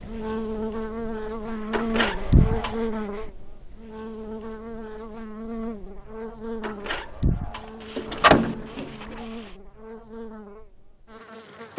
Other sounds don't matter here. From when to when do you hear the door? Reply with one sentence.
The door can be heard from 1.7 to 2.8 s and from 6.6 to 9.1 s.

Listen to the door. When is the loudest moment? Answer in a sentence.
The volume of the door peaks at 8 seconds.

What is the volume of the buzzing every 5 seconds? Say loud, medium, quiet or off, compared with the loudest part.
loud, medium, medium.